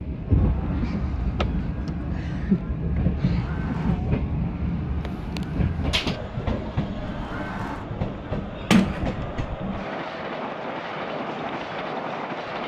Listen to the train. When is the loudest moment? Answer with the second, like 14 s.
3 s.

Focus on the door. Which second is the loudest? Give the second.
9 s.